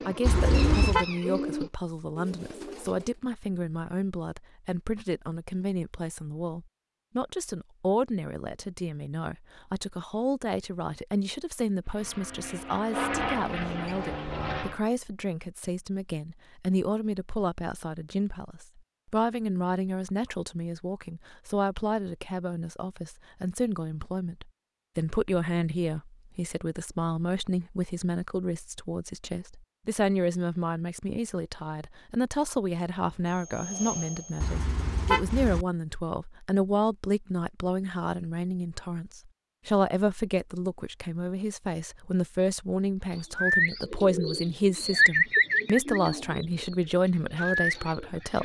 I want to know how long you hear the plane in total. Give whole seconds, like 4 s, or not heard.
4 s.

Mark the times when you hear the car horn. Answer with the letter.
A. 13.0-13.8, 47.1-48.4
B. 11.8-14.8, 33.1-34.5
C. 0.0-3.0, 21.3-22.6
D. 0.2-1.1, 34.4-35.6
D.